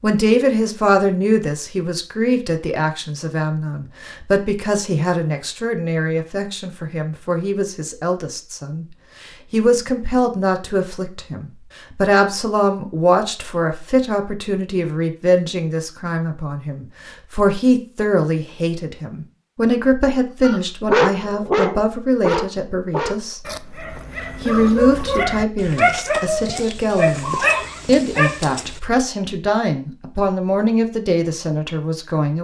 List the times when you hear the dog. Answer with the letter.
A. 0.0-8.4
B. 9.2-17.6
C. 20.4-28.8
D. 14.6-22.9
C.